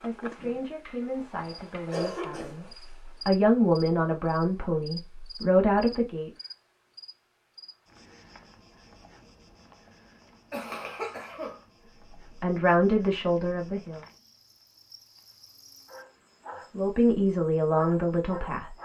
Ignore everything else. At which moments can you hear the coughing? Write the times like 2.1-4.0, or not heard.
1.4-2.7, 10.5-11.6.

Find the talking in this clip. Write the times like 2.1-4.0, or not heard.
0.0-6.3, 12.4-14.0, 16.8-18.8.